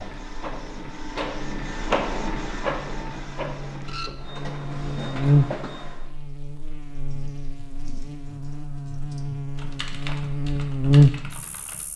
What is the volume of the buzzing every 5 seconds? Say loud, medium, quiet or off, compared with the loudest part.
quiet, medium, loud.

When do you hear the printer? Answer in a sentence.
You can hear the printer from 0.0 to 6.1 s.